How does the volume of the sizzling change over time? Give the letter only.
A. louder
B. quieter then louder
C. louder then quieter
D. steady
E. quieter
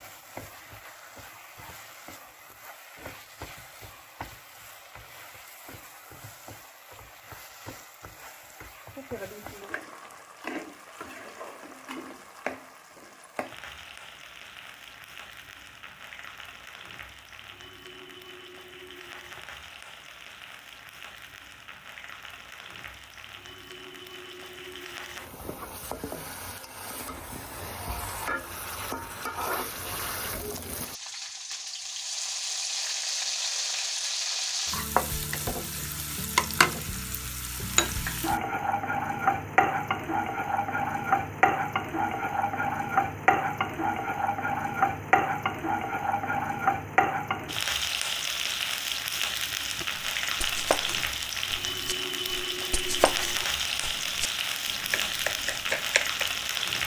A.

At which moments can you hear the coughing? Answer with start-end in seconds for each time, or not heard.
not heard.